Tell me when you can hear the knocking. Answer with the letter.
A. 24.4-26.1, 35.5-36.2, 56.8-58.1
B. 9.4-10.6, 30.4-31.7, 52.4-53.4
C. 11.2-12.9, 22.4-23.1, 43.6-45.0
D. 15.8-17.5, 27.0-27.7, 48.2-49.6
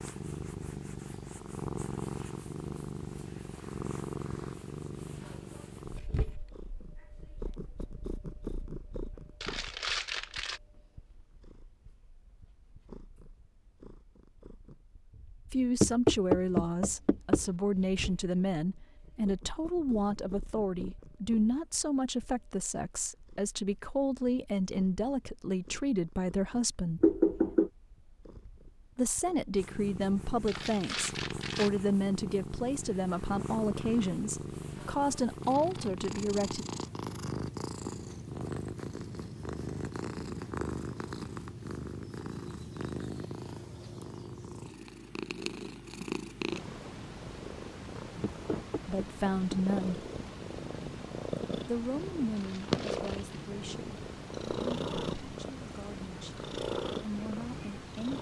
D.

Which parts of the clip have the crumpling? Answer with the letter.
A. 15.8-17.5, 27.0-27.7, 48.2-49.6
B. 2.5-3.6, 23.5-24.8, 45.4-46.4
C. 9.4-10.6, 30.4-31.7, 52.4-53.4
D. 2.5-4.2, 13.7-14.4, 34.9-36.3
C.